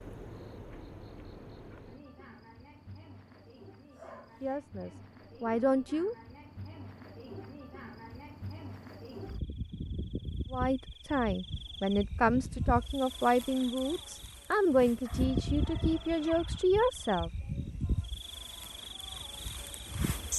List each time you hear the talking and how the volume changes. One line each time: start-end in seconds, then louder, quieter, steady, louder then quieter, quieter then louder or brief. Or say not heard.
4.4-6.2 brief
10.5-17.3 steady.